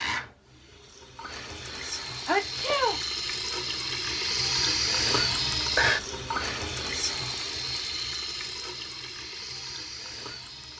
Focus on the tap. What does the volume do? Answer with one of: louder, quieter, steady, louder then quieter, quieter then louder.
louder then quieter.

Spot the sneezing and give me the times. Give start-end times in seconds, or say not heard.
1.6-3.0.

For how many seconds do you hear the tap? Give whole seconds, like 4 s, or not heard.
11 s.